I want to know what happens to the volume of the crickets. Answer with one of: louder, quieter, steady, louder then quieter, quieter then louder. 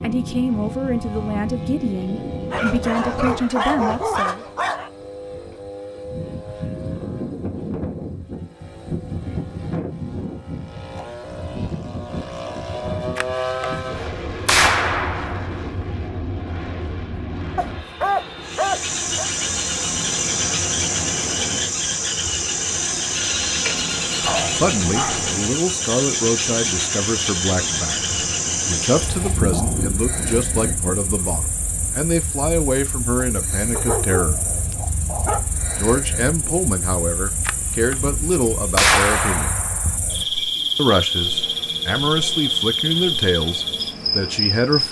quieter then louder.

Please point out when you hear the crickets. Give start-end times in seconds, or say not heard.
18.4-44.8.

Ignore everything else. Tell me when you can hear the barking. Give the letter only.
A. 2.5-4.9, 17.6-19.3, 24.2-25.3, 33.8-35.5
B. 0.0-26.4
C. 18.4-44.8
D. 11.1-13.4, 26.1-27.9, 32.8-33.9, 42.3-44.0
A.